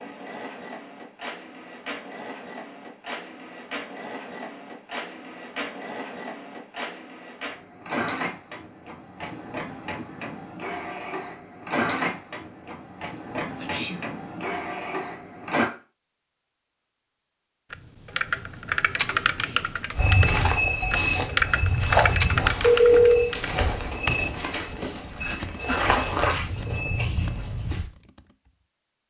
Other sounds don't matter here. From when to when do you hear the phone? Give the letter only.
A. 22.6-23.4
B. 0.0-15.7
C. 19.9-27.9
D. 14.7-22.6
A.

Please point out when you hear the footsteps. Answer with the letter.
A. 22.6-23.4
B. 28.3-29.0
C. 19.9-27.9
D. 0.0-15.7
C.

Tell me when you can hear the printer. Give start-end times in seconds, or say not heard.
0.0-15.7.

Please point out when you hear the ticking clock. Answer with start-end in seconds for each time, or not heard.
not heard.